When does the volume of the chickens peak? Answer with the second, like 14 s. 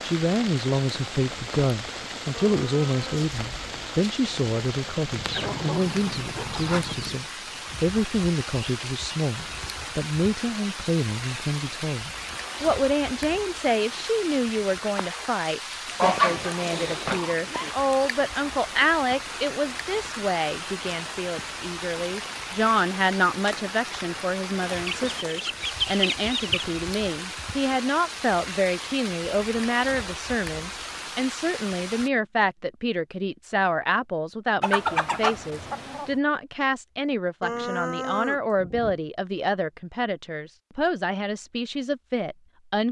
16 s.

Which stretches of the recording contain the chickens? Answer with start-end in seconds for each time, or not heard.
5.2-7.2, 16.0-17.7, 24.7-26.6, 34.6-36.1.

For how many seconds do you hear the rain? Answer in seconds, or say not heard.
32 s.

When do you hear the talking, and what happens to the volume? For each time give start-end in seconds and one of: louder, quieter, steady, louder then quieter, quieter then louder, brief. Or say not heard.
0.0-42.8 steady.